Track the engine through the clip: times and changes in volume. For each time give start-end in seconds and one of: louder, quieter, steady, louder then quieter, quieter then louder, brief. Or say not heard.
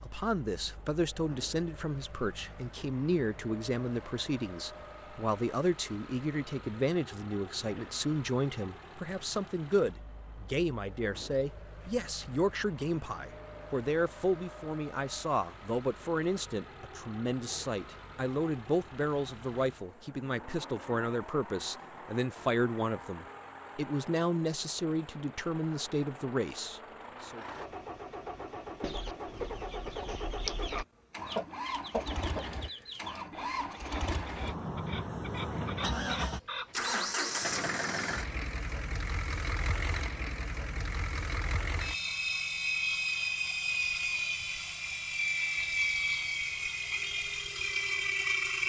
0.0-48.6 louder.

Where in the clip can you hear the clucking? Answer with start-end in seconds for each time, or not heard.
28.8-37.1.